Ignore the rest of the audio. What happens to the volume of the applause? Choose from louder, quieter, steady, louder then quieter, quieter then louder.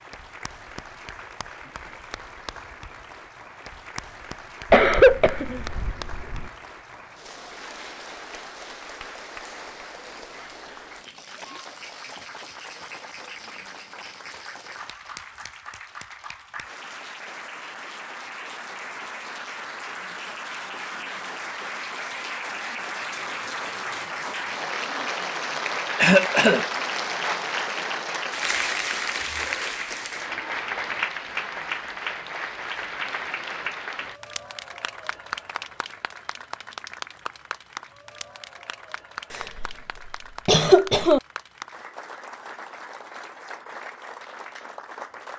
louder then quieter.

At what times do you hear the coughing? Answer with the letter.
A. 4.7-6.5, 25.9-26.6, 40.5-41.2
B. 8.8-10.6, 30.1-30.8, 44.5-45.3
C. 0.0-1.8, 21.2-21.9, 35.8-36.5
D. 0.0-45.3
A.